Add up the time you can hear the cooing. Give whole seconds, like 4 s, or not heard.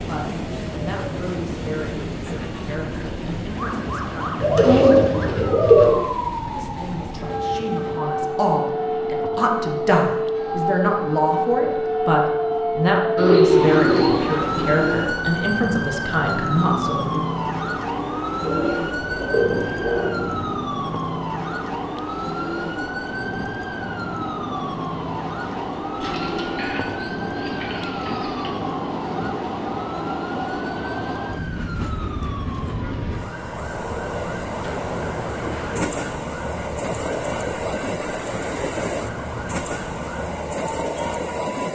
9 s.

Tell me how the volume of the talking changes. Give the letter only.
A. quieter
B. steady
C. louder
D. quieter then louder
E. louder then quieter
C.